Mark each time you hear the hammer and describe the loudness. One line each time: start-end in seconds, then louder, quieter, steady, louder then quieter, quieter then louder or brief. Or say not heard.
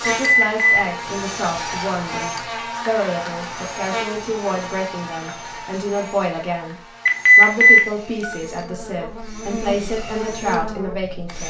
not heard.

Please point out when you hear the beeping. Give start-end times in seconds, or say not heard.
0.2-0.8, 7.0-8.3.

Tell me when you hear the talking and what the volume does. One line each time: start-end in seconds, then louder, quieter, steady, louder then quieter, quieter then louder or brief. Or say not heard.
0.0-11.4 steady.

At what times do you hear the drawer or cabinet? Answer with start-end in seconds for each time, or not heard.
not heard.